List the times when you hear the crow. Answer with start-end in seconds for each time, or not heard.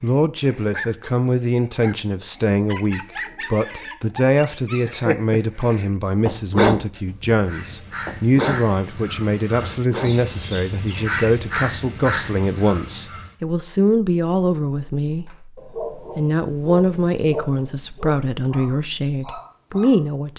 7.3-13.3.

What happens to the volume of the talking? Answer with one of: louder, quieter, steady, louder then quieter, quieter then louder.
steady.